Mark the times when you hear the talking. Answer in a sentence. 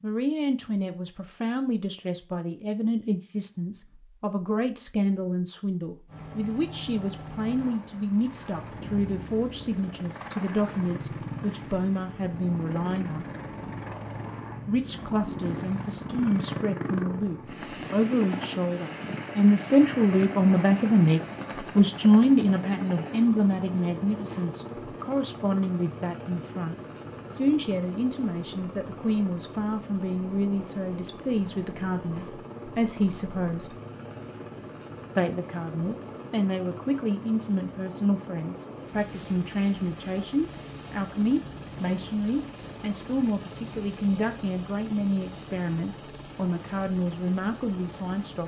You can hear the talking from 0.0 to 13.2 s, from 14.7 to 26.8 s, from 27.4 to 33.8 s and from 35.1 to 48.4 s.